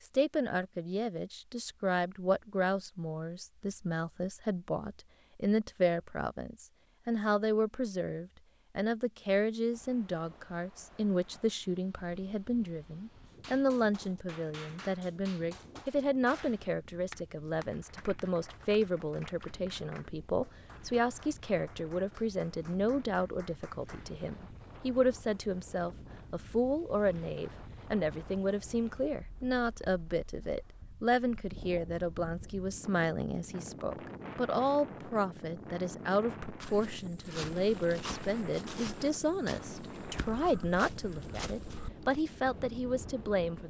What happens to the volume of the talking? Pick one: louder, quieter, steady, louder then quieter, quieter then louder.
steady.